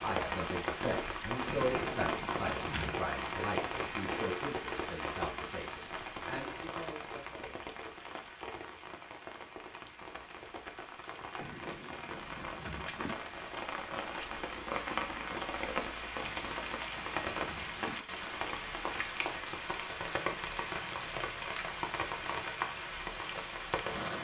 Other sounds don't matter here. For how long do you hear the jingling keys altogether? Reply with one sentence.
You can hear the jingling keys for 5 seconds altogether.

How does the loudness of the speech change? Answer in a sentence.
The volume of the speech goes down.